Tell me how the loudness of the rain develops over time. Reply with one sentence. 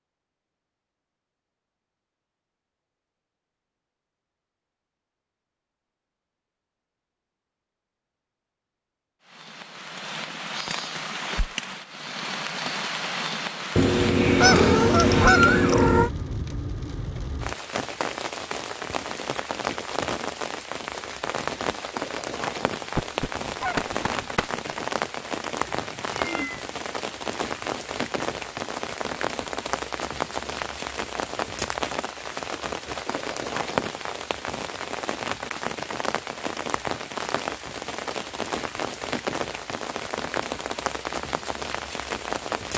The volume of the rain stays about the same.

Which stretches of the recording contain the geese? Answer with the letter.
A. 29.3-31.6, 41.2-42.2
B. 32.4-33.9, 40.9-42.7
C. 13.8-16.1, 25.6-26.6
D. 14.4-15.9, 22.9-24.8
D.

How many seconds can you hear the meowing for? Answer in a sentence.
You can hear the meowing for 3 seconds altogether.